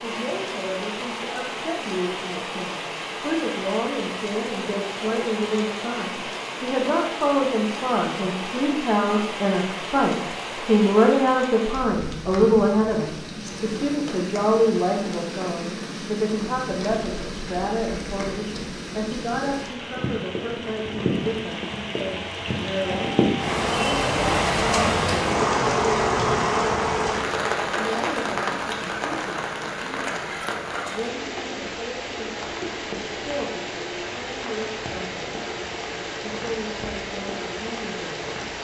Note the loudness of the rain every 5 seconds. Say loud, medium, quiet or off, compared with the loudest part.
medium, medium, medium, medium, loud, loud, medium, medium.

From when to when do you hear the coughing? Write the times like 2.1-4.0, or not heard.
not heard.